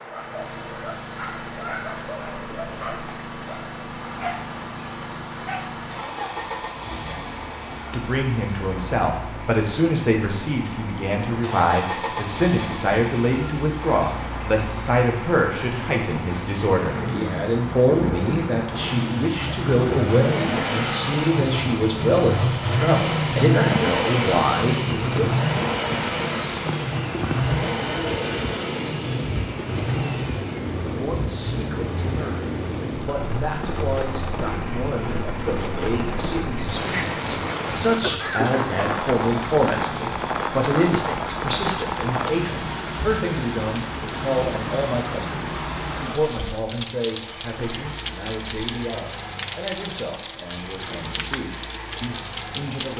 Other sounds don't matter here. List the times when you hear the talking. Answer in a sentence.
You can hear the talking from 7.9 to 25.4 s and from 30.9 to 52.9 s.